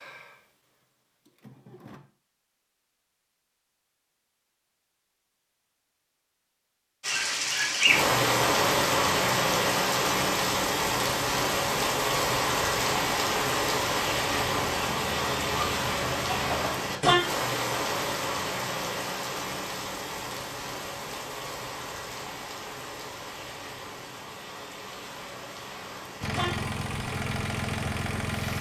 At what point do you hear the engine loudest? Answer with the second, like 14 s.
28 s.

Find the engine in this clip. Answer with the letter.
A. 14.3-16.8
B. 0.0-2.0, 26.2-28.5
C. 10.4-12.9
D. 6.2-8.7
B.